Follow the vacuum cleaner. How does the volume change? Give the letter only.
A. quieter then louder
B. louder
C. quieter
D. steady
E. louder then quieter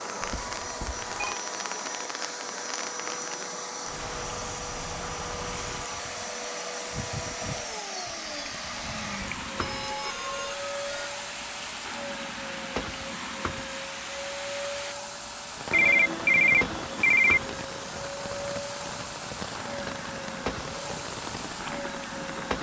D.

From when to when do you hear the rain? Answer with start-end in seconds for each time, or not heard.
0.0-22.5.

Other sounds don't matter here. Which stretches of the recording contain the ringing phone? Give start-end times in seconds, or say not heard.
0.2-1.4, 9.6-11.1, 15.7-17.4.